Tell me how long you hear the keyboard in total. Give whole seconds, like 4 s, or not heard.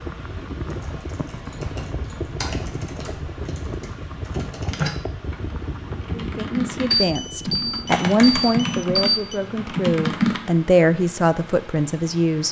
10 s.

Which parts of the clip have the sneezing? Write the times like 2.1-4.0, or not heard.
not heard.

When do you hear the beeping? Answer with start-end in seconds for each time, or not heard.
6.9-9.4.